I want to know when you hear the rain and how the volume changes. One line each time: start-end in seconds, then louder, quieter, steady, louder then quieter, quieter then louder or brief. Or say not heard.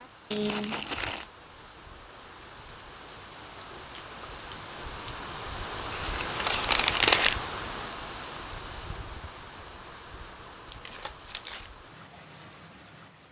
0.0-13.2 louder then quieter.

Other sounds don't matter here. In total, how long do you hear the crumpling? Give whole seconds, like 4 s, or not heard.
3 s.